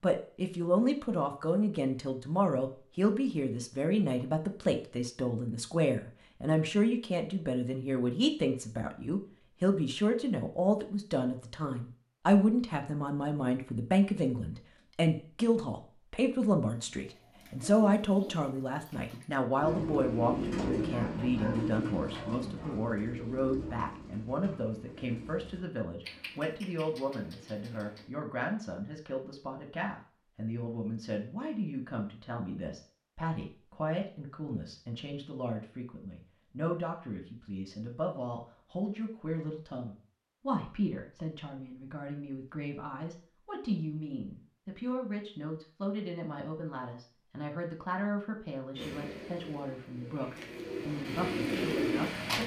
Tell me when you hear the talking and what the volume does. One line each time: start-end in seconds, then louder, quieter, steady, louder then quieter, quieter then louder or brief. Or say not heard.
0.0-52.4 quieter.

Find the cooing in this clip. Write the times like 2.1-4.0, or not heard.
16.7-28.1, 48.8-52.4.